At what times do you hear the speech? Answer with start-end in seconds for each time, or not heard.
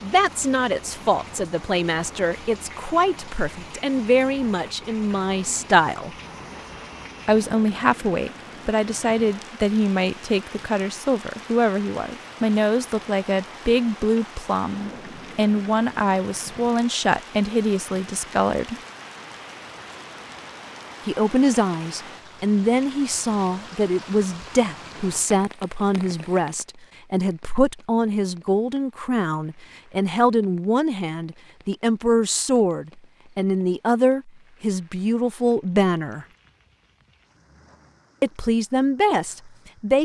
0.0-6.2, 7.2-18.8, 21.1-36.2, 38.2-40.0.